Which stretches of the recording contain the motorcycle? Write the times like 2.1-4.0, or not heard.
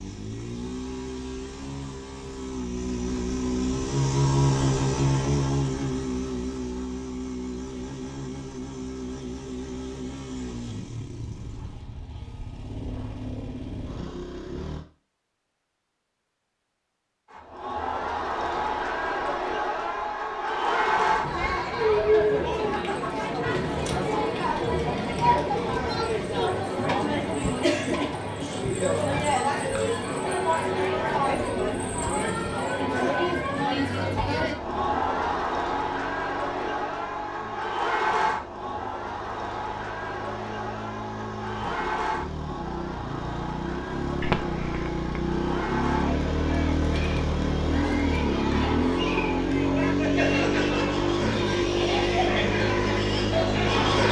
0.0-14.8, 34.5-54.0.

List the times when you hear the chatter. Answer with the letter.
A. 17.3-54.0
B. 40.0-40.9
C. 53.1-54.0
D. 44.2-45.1
A.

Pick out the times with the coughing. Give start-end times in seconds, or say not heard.
44.2-45.1.